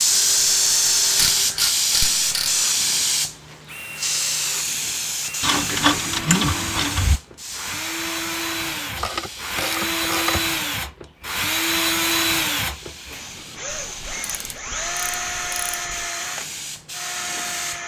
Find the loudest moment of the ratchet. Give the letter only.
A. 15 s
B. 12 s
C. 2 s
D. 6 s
D.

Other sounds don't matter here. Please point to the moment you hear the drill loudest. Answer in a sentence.
The loudest moment of the drill is at 12 seconds.